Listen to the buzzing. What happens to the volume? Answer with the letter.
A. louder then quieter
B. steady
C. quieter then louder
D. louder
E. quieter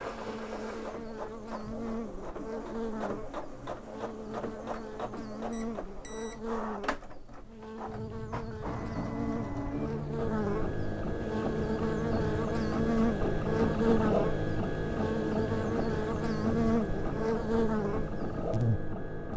D.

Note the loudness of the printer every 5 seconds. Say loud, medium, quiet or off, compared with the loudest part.
medium, medium, loud, loud.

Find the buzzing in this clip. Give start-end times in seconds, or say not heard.
0.0-19.3.